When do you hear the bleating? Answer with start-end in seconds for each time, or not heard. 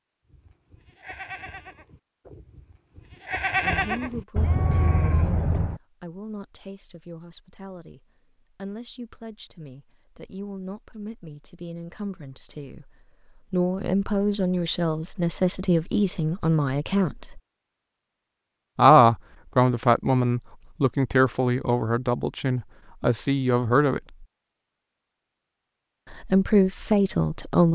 0.3-5.8.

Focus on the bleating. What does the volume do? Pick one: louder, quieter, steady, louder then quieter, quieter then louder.
quieter then louder.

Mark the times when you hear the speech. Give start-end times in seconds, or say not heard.
3.6-17.4, 18.8-24.2, 26.1-27.6.